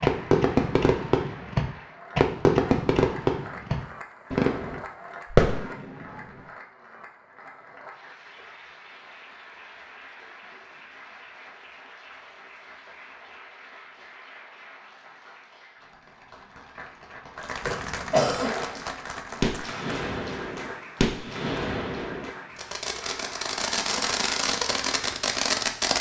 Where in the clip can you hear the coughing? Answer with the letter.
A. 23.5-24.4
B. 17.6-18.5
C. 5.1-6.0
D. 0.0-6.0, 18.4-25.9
B.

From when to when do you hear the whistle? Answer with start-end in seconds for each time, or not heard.
not heard.